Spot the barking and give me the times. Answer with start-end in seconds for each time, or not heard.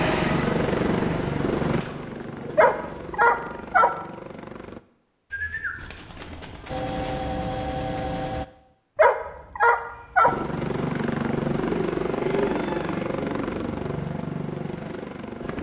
2.5-3.9, 8.9-10.3.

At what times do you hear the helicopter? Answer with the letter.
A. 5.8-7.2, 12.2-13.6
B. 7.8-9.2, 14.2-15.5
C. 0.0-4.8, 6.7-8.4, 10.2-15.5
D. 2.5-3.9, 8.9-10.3
C.